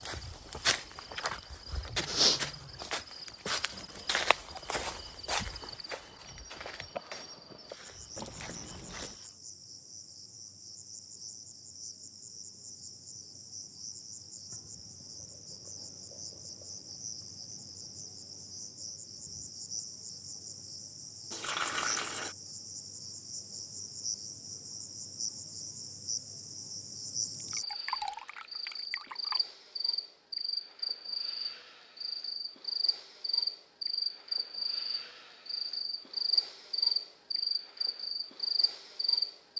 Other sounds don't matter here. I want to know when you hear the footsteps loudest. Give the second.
2 s.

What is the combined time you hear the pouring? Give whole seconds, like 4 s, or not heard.
4 s.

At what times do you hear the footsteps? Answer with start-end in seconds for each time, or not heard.
0.0-9.2.